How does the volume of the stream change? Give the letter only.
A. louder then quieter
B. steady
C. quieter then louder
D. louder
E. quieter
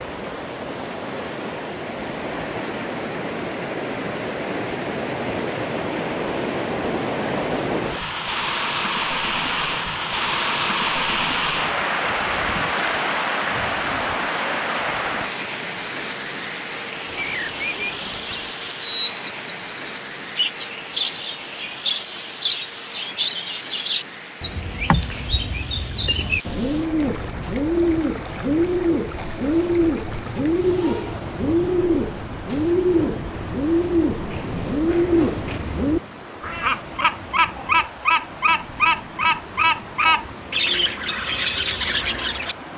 E.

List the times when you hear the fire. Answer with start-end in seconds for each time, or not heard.
not heard.